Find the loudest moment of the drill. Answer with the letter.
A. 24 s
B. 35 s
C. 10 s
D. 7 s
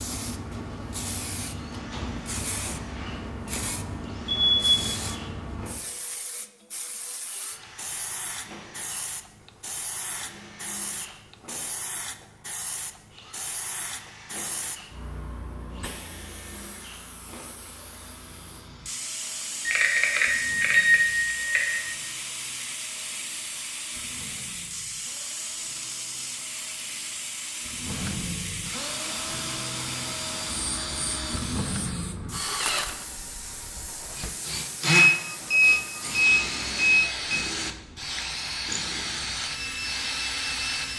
B.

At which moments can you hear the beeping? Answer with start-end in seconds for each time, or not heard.
4.3-4.8, 19.6-21.9, 34.9-37.4.